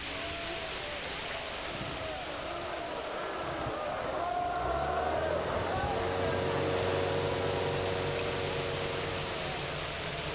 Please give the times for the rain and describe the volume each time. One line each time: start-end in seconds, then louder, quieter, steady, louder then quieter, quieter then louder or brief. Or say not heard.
0.0-10.2 quieter then louder.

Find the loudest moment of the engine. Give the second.
7 s.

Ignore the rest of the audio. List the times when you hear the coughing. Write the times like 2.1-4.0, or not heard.
not heard.